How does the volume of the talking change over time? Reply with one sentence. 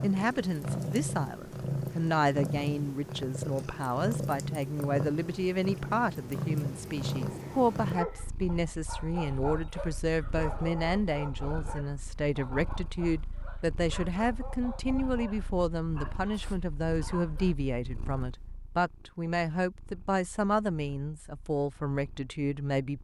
The loudness of the talking stays about the same.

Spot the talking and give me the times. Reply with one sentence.
You can hear the talking from 0.0 to 22.9 s.